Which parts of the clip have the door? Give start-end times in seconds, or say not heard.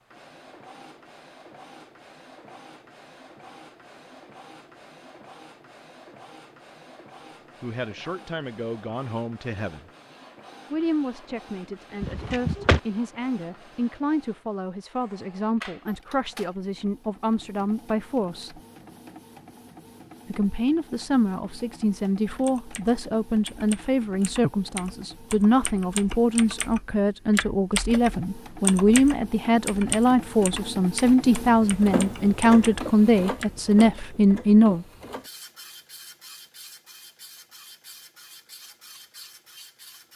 12.0-12.8.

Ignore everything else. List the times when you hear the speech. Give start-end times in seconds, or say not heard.
7.6-9.9, 10.7-18.6, 20.2-34.9.